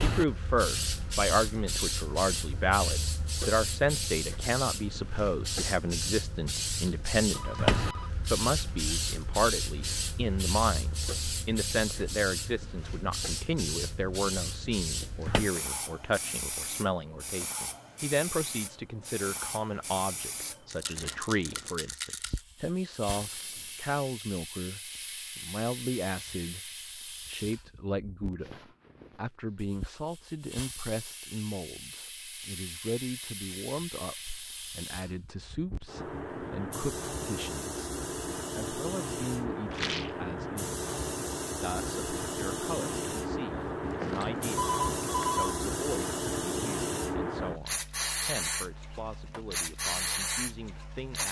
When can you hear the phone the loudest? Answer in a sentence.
The loudest moment of the phone is at 45 seconds.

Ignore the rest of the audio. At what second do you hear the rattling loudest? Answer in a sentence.
The loudest moment of the rattling is at 40 seconds.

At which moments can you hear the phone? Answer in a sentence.
The phone can be heard from 7.3 to 8.1 s, from 23.1 to 23.8 s and from 43.8 to 45.6 s.